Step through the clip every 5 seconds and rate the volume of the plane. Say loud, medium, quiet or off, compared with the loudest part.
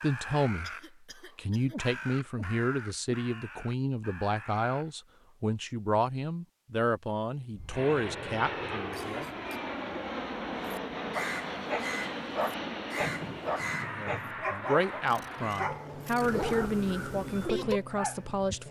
off, loud, loud, medium.